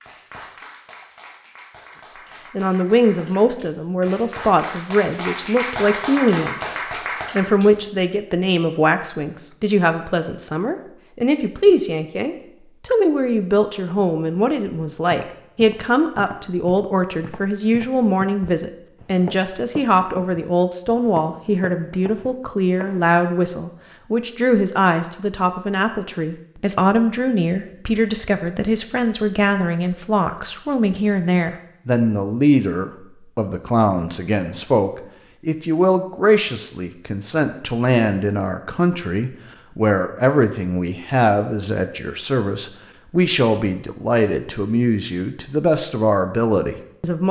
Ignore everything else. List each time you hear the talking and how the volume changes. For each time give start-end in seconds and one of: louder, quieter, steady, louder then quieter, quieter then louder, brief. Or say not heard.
2.5-47.2 steady.